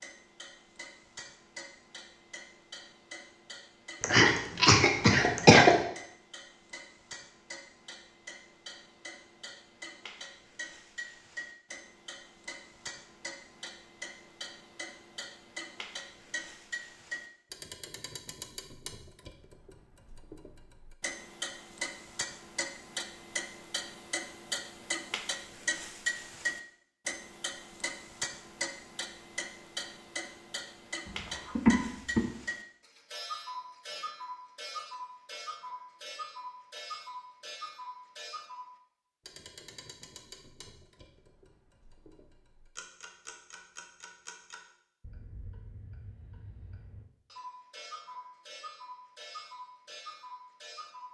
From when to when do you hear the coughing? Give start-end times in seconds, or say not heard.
4.0-5.8, 31.1-32.2.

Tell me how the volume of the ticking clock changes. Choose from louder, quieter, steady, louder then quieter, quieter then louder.
louder then quieter.